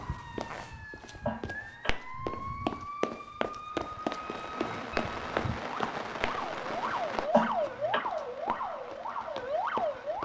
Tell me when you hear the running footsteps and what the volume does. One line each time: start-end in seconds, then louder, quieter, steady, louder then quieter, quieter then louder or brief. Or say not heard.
0.0-10.2 louder then quieter.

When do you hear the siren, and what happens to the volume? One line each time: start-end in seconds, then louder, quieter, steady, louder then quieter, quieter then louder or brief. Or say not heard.
0.0-10.2 louder.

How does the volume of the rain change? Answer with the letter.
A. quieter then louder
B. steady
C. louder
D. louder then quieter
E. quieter
E.